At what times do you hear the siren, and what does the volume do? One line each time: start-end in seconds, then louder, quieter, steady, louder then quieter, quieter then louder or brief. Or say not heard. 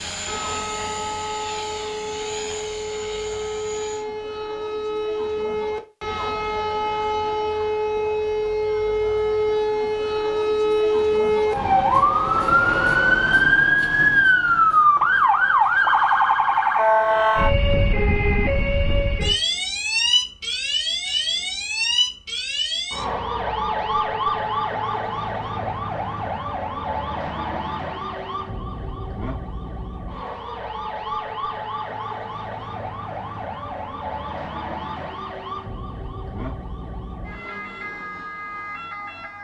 0.0-39.3 louder then quieter.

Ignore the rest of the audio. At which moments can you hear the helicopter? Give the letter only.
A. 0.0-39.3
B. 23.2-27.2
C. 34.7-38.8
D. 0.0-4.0
D.